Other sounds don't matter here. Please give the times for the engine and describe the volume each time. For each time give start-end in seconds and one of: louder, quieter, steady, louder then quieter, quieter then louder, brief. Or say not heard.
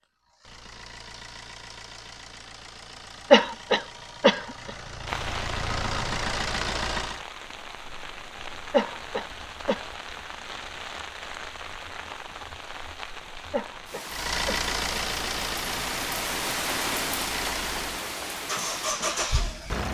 0.0-7.2 louder
14.1-19.8 quieter then louder.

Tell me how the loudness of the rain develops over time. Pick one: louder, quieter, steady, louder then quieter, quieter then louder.
louder.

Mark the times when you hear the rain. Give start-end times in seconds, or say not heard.
5.0-19.8.